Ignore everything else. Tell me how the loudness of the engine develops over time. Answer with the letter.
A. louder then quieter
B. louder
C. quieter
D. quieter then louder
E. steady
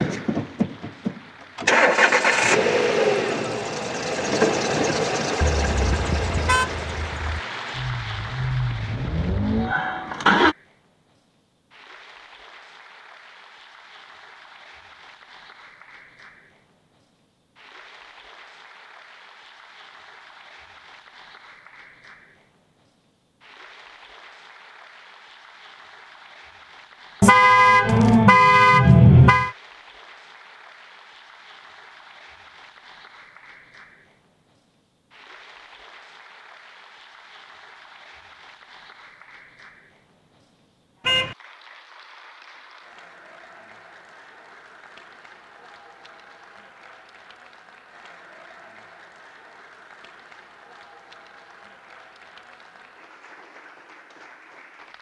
D.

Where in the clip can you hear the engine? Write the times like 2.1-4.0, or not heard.
0.0-10.6.